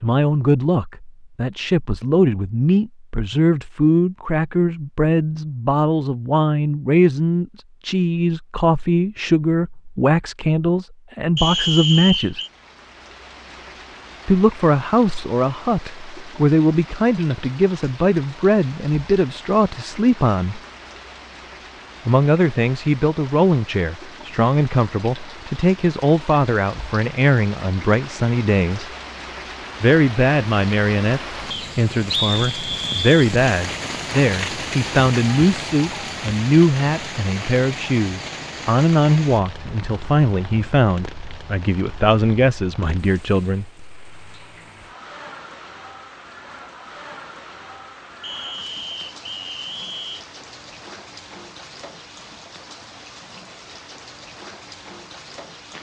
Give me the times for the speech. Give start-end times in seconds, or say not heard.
0.0-12.4, 14.2-20.6, 22.1-28.9, 29.8-43.7.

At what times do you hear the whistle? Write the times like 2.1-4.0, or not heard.
11.3-12.5, 31.5-33.1, 48.2-50.2.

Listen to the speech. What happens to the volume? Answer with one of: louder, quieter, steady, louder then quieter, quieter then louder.
steady.